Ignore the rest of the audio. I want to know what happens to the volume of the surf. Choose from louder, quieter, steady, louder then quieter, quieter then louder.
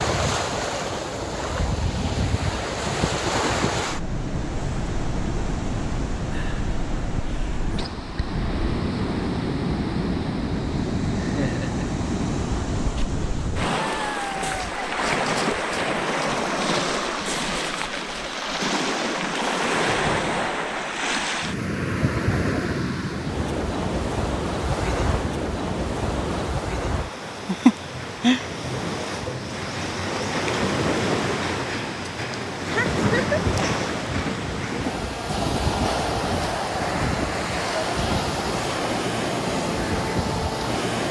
steady.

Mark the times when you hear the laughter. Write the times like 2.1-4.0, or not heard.
11.2-11.8, 32.7-33.4.